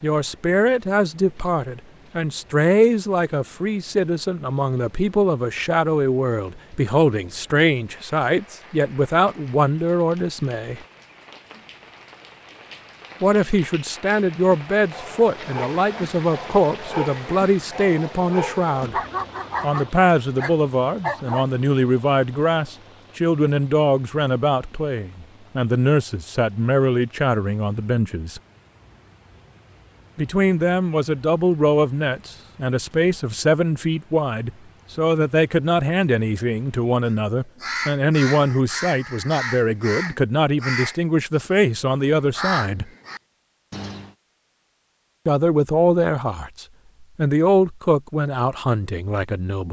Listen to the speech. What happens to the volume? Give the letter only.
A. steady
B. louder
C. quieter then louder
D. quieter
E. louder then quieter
A.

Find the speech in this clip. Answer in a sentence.
You can hear the speech from 0.0 to 10.8 s, from 13.2 to 19.0 s, from 19.6 to 28.4 s, from 30.1 to 42.9 s and from 45.2 to 49.6 s.